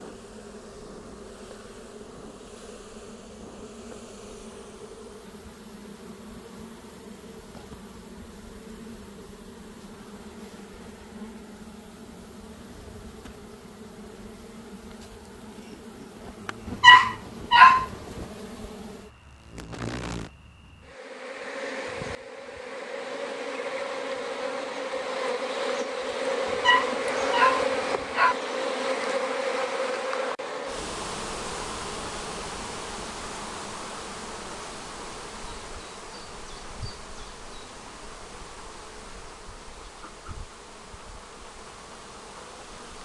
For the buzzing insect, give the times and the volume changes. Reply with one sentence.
You can hear the buzzing insect from 0.0 to 43.0 s, getting louder then quieter.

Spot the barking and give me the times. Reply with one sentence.
You can hear the barking from 16.7 to 18.2 s and from 26.5 to 28.4 s.